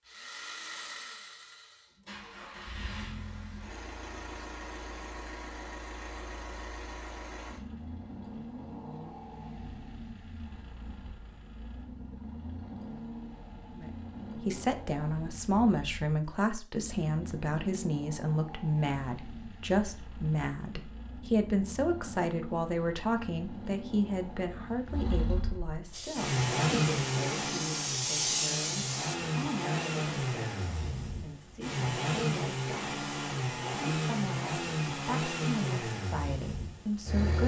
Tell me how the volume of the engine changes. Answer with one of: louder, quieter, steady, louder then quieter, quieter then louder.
louder.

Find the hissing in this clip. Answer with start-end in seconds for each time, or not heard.
25.9-29.2.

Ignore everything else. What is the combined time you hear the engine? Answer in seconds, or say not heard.
37 s.